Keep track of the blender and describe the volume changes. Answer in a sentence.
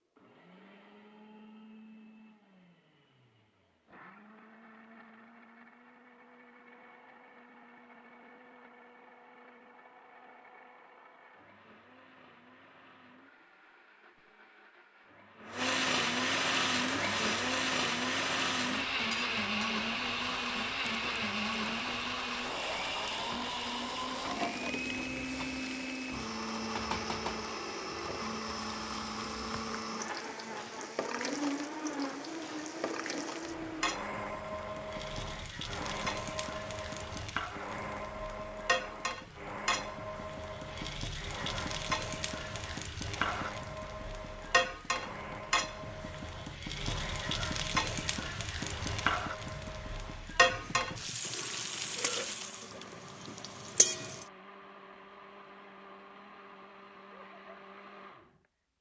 The volume of the blender goes up, then down.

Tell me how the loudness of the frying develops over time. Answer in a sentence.
The volume of the frying goes up.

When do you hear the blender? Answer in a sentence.
The blender can be heard from 0.0 to 58.5 s.